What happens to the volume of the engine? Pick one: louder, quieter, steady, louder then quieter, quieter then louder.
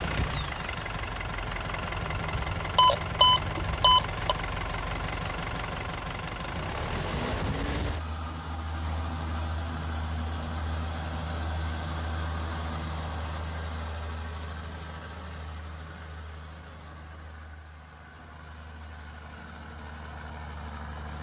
quieter.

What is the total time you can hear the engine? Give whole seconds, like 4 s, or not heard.
21 s.